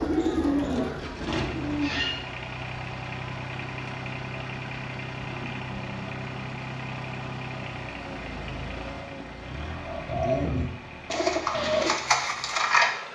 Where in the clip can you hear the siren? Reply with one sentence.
The siren can't be heard in this clip.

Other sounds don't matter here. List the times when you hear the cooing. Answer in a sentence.
The cooing can be heard from 0.0 to 2.2 s and from 9.8 to 12.9 s.